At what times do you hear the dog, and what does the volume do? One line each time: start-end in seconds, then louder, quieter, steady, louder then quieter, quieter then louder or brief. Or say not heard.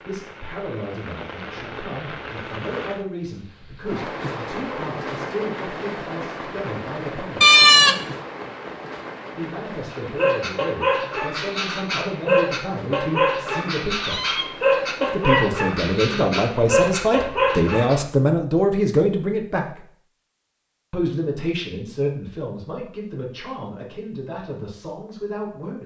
9.9-17.9 steady.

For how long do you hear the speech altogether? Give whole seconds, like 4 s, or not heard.
22 s.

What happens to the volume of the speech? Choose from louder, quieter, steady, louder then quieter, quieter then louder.
louder then quieter.